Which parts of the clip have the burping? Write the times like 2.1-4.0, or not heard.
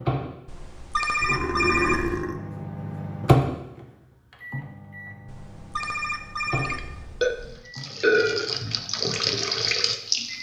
1.2-2.4, 6.7-8.6.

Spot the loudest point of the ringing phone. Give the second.
2 s.